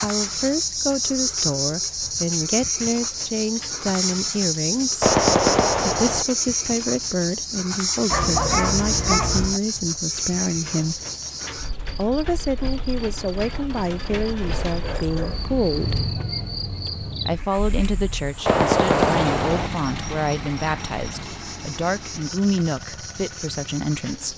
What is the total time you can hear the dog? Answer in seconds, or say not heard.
3 s.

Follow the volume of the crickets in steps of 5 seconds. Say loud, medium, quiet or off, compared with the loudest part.
loud, loud, medium, medium, quiet.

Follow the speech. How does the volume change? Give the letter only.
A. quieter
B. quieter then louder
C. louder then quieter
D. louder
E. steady
E.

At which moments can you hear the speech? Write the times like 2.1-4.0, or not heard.
0.0-5.2, 5.8-11.0, 11.9-16.1, 17.1-24.3.